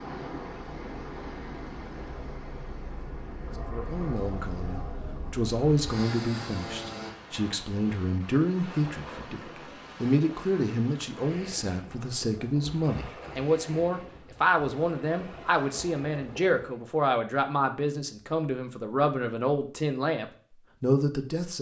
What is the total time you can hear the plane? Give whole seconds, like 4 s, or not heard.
7 s.